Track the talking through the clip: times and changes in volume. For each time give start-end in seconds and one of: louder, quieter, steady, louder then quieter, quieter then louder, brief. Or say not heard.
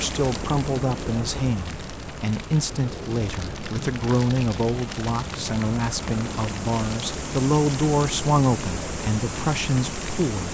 0.0-10.4 steady.